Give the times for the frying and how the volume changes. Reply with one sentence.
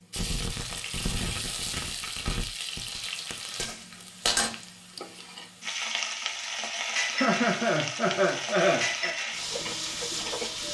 You can hear the frying from 0.1 to 10.6 s, at a steady volume.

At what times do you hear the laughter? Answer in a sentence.
You can hear the laughter from 7.1 to 9.2 s.